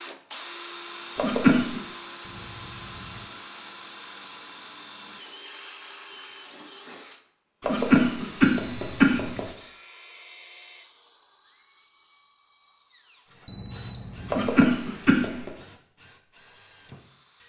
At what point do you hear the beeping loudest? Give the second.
14 s.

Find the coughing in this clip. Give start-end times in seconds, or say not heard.
1.1-1.8, 7.6-9.4, 14.3-15.5.